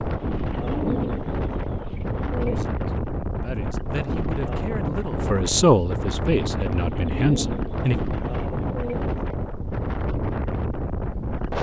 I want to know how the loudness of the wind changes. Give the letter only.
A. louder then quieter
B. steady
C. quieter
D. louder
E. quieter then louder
B.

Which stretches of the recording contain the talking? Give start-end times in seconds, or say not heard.
2.5-8.0.